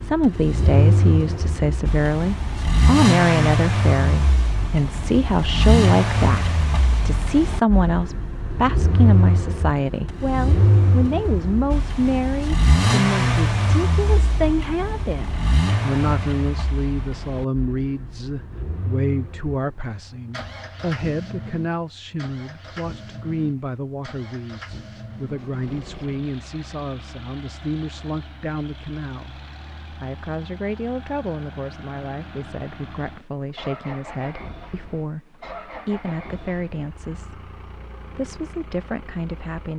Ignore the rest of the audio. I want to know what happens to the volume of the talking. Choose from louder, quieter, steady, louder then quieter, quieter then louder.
quieter.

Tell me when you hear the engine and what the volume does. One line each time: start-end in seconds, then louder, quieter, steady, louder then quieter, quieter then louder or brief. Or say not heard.
0.0-39.7 quieter.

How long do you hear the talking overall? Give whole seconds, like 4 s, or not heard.
40 s.